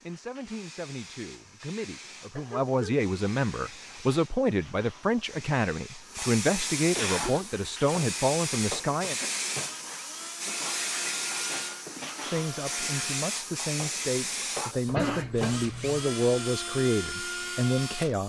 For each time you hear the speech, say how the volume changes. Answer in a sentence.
The speech can be heard from 0.0 to 9.2 s, getting louder; and from 12.2 to 18.2 s, getting louder.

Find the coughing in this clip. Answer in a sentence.
You can hear the coughing from 2.1 to 3.0 s, from 7.0 to 7.5 s and from 14.8 to 16.0 s.